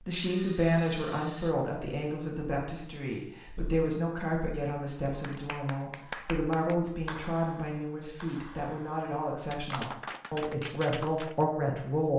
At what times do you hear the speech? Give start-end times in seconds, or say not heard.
0.0-12.1.